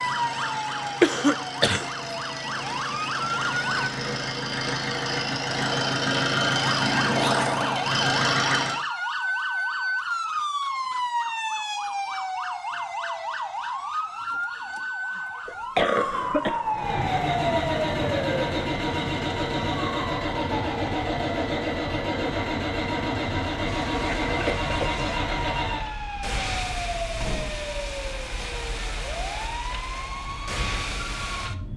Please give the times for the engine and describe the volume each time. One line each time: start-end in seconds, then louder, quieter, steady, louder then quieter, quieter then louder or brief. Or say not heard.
0.0-8.8 louder
16.7-25.9 steady.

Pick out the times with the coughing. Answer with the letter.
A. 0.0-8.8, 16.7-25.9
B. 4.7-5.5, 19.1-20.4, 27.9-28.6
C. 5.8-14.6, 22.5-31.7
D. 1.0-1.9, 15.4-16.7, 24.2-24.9
D.